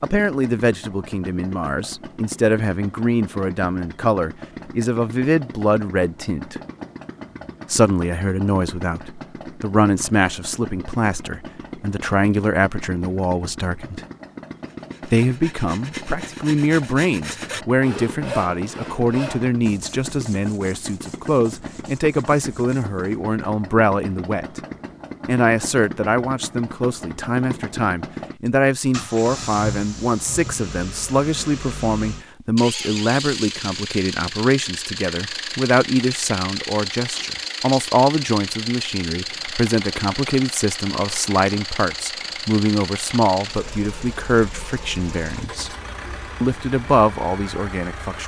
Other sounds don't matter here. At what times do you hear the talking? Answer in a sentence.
You can hear the talking from 0.0 to 6.6 s, from 7.7 to 14.0 s, from 15.1 to 24.6 s, from 25.2 to 45.7 s and from 46.4 to 48.2 s.